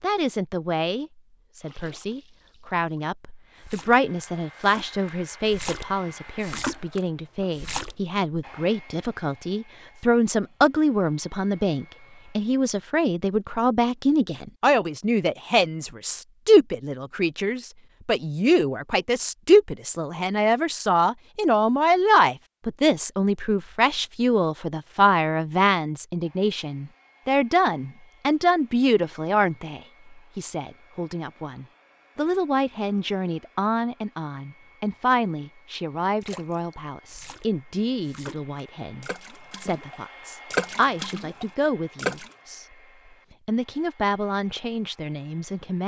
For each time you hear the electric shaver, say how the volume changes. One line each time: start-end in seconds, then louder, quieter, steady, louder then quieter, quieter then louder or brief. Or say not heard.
not heard.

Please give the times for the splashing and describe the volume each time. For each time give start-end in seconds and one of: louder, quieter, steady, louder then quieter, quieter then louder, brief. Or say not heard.
1.6-8.0 louder
36.2-42.4 louder then quieter.